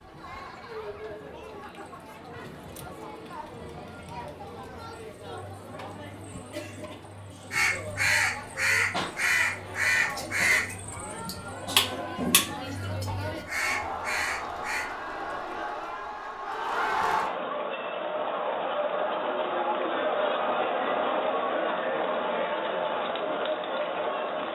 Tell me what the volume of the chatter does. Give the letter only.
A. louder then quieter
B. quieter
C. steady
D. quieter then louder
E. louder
E.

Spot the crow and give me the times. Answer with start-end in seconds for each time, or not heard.
7.5-14.9.